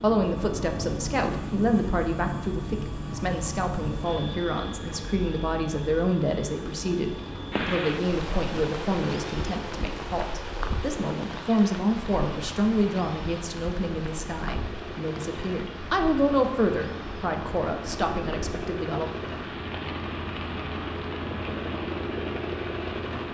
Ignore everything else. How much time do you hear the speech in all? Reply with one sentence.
You can hear the speech for 19 seconds altogether.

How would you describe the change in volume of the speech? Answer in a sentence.
The loudness of the speech stays about the same.